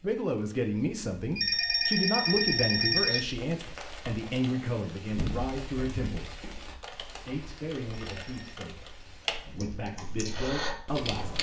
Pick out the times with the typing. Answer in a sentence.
You can hear the typing from 3.4 to 11.3 s.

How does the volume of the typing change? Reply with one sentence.
The volume of the typing goes up.